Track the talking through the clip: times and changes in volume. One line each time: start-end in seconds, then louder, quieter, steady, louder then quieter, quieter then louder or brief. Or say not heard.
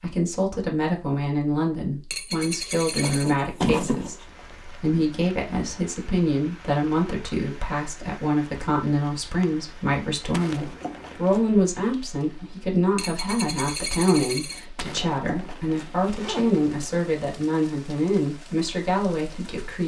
0.0-19.8 steady.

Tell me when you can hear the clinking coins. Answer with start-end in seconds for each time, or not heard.
2.1-3.4, 12.9-14.7.